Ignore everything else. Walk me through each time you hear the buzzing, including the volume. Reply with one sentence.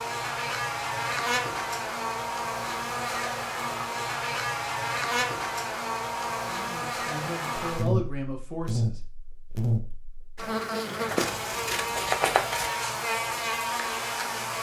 The buzzing can be heard from 0.0 to 14.5 s, at a steady volume.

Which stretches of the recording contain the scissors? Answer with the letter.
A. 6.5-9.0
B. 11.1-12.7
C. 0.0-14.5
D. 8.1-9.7
B.